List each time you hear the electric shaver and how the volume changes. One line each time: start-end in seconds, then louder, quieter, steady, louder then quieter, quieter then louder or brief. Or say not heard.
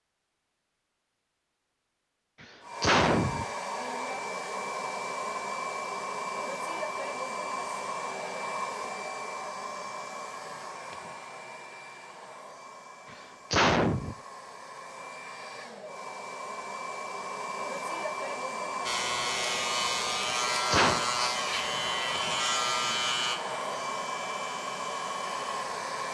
18.9-26.0 quieter.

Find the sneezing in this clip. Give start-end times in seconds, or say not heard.
2.4-3.5, 13.1-14.2, 20.3-21.1.